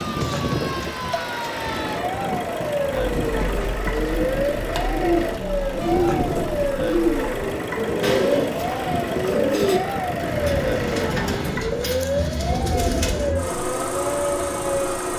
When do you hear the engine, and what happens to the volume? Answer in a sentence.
The engine can be heard from 0.0 to 15.1 s, at a steady volume.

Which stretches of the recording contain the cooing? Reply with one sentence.
The cooing can be heard from 2.9 to 13.3 s.